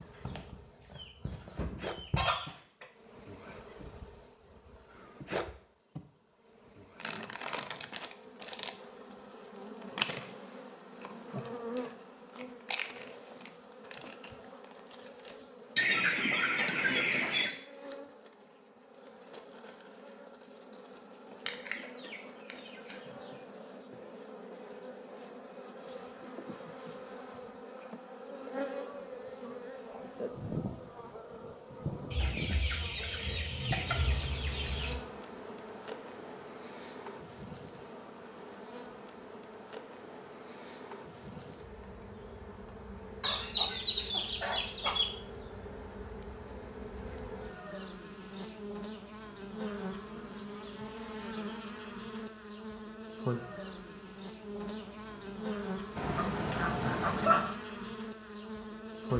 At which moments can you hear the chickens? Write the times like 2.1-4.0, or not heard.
0.1-2.9, 15.8-17.6, 21.4-22.9, 32.1-35.0, 43.2-45.0, 56.0-57.5.